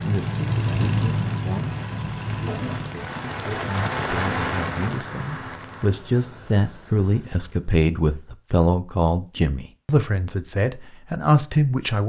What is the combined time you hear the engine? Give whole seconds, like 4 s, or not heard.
3 s.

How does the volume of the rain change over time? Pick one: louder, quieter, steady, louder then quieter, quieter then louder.
louder then quieter.